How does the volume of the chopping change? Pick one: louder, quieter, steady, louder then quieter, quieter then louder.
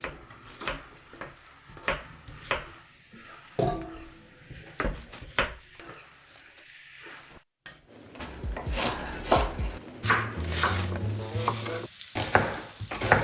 louder.